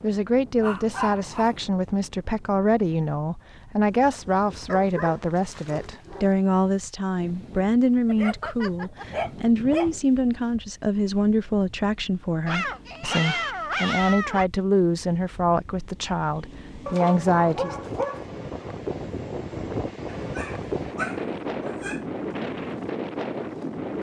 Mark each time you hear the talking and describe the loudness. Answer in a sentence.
You can hear the talking from 0.0 to 17.8 s, at a steady volume.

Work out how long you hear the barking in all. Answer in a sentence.
You can hear the barking for 10 seconds altogether.